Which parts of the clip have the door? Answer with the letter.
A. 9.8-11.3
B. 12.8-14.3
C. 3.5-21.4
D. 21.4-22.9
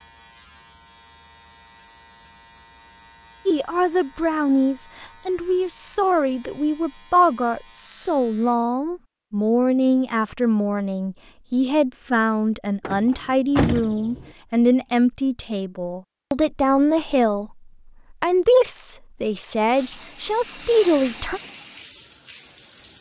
B.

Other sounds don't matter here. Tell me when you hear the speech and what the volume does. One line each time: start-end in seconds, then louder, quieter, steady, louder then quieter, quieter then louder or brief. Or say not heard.
3.5-21.4 steady.